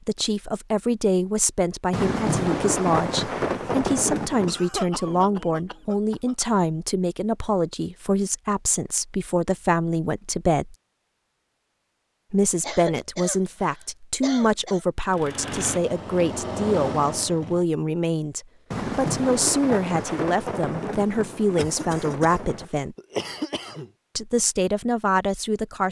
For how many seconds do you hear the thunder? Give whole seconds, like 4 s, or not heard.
7 s.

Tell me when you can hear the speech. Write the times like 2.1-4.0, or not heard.
0.1-10.8, 12.3-22.9, 24.1-25.8.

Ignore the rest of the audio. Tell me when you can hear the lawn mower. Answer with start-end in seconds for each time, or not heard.
15.1-17.6.